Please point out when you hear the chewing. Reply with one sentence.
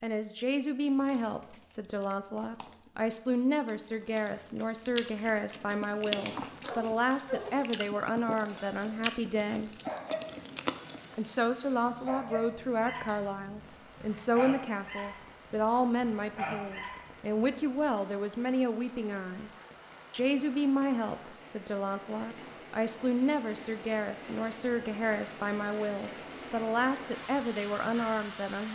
The chewing can be heard from 0.9 to 11.3 s.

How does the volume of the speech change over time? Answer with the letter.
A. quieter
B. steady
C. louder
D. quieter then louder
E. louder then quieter
B.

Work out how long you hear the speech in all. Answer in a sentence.
You can hear the speech for 27 seconds altogether.